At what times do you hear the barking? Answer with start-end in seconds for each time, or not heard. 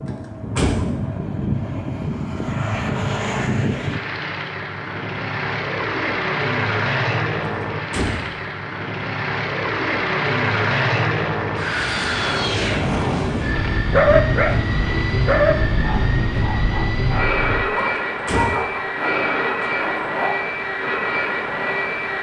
13.5-20.3.